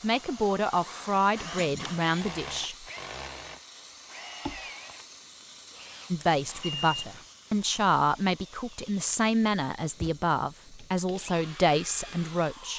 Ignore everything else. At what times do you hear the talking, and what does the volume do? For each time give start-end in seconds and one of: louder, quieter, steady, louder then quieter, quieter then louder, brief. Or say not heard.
0.0-2.9 brief
6.1-12.7 steady.